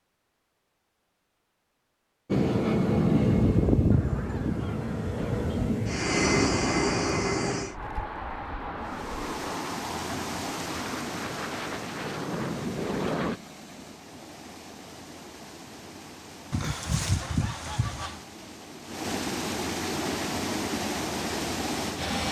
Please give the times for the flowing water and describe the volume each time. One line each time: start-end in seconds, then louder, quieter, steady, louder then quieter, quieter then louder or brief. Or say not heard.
8.8-22.2 quieter then louder.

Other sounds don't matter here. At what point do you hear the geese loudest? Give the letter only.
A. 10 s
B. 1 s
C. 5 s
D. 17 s
D.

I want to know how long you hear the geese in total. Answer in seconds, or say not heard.
4 s.